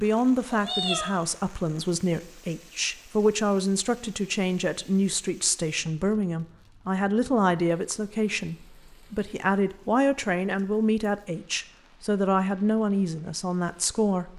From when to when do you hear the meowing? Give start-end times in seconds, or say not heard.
0.5-1.1.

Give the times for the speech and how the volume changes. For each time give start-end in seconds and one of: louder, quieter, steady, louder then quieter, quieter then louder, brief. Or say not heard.
0.0-14.3 steady.